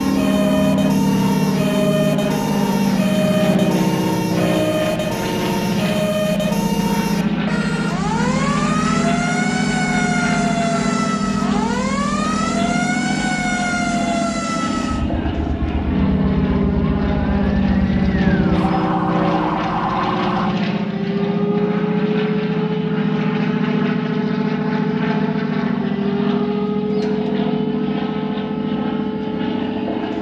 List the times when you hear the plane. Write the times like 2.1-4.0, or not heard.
0.0-30.1.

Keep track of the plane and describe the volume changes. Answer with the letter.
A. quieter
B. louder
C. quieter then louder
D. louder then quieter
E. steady
E.